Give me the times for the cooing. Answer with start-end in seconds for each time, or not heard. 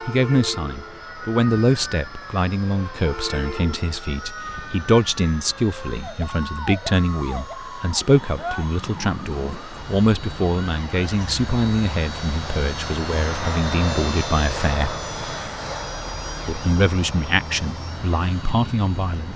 not heard.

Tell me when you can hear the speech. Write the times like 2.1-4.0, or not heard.
0.1-15.0, 16.4-19.3.